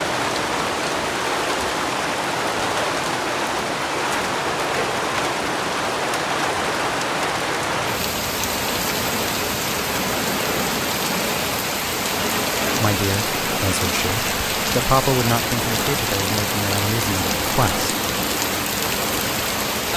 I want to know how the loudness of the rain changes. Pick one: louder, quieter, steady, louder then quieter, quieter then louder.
steady.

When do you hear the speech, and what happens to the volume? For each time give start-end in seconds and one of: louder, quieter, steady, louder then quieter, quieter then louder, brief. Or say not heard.
12.8-17.9 louder then quieter.